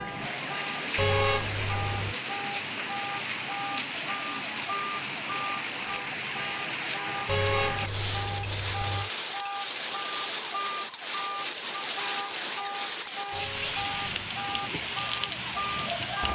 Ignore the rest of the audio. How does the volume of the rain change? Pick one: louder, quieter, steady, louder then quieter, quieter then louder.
steady.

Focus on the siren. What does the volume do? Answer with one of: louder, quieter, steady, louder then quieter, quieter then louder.
steady.